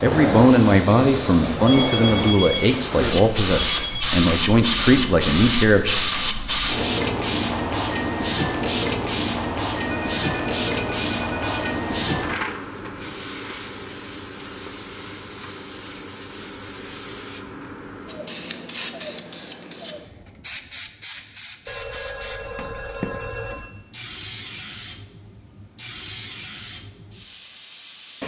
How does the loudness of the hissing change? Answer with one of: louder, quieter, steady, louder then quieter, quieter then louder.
quieter.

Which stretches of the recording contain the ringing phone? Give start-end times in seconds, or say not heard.
1.6-4.2, 9.8-11.8, 21.6-23.7.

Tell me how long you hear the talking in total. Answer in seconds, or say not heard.
6 s.